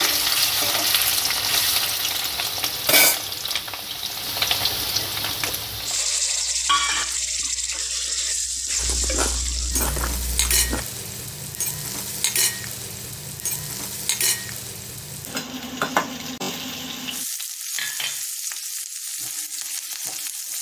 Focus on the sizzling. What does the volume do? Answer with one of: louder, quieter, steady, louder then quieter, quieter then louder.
quieter.